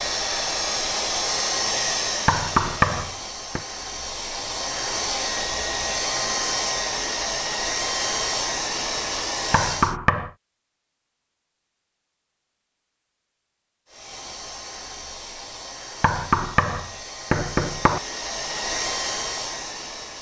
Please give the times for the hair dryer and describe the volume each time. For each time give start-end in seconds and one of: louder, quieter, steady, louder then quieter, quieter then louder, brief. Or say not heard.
0.0-9.9 quieter then louder
13.8-20.1 louder.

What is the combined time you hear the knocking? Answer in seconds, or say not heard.
4 s.